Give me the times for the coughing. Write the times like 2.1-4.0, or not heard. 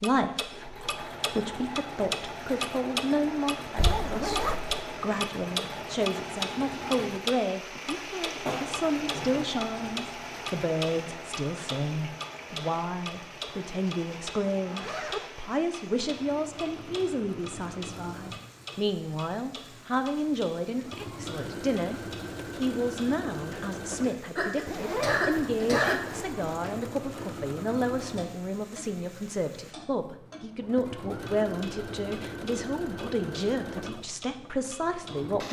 8.4-9.4, 24.4-26.0.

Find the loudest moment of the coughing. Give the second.
26 s.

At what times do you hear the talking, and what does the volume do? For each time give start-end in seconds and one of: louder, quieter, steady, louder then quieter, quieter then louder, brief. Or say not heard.
0.0-35.4 steady.